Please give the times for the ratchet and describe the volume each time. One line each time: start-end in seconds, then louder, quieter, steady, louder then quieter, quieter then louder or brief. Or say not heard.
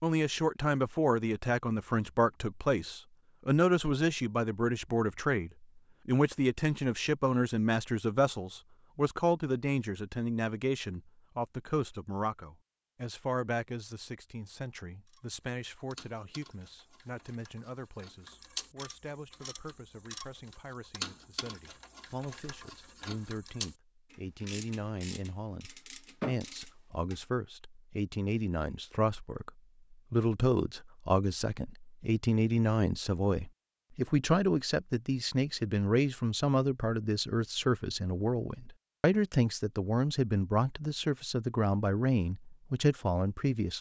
15.1-27.1 louder.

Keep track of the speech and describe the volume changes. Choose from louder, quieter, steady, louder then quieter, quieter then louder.
quieter then louder.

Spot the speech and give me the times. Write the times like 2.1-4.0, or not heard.
0.0-43.7.